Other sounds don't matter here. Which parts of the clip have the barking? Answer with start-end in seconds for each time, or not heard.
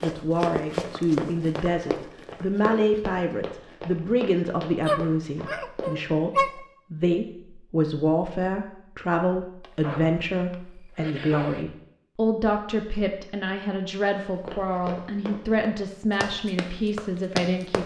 4.8-6.5, 9.6-11.7.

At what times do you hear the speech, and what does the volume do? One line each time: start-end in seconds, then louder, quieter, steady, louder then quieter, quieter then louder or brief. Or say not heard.
0.0-17.8 steady.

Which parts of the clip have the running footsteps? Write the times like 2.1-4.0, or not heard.
0.0-6.0, 14.3-17.8.